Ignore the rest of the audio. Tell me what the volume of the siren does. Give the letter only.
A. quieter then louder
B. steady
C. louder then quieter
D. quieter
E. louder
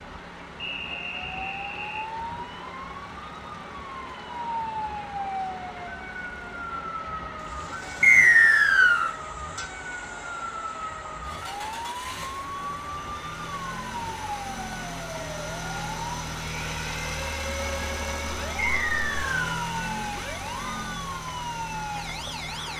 B.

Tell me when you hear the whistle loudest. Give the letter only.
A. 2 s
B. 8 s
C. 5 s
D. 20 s
B.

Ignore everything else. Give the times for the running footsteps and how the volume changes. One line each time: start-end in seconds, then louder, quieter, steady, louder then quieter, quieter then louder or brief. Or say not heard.
not heard.